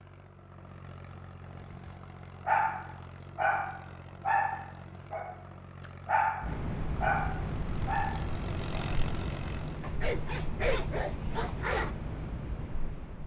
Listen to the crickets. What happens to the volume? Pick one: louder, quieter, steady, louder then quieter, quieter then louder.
steady.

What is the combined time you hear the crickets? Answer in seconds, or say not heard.
7 s.